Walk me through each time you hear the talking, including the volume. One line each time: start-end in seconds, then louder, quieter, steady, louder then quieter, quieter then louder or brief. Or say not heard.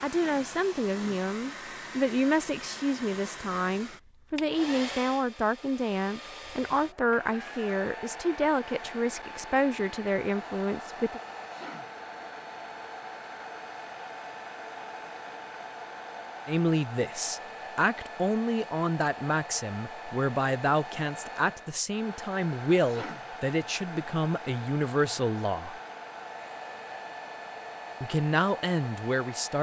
0.0-11.2 steady
16.4-25.8 steady
28.0-29.5 brief.